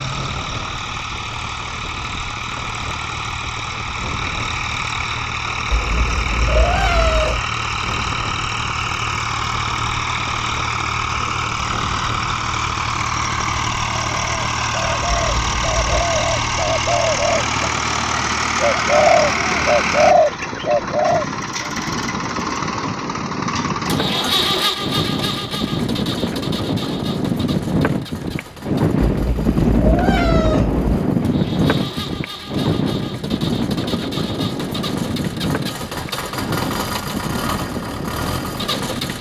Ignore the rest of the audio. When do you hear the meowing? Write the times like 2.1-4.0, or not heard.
5.7-7.5, 15.2-16.1, 29.0-30.9.